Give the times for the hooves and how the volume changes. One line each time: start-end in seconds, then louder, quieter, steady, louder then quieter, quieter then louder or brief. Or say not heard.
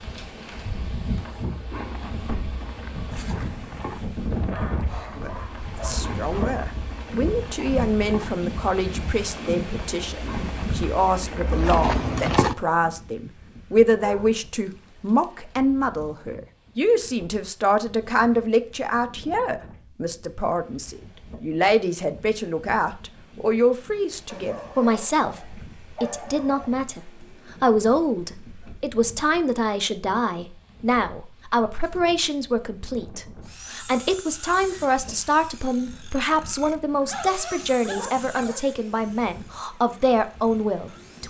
1.1-12.6 louder.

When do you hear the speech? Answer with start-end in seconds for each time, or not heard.
5.2-41.2.